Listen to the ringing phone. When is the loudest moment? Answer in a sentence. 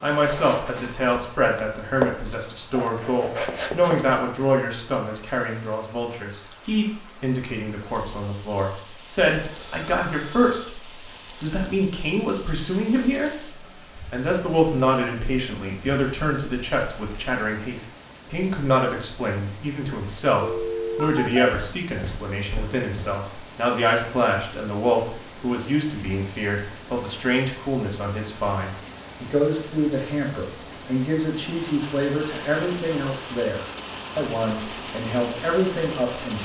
The volume of the ringing phone peaks at 21 seconds.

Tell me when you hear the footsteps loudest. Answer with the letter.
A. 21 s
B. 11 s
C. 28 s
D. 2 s
D.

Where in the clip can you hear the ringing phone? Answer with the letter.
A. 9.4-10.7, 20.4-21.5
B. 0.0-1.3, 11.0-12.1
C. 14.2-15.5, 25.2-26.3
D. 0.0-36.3
A.